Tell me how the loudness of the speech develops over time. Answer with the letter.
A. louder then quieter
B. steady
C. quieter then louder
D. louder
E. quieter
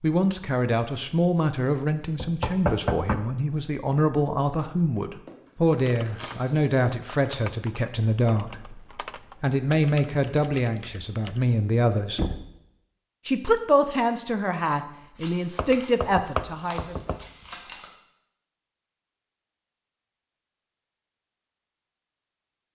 B.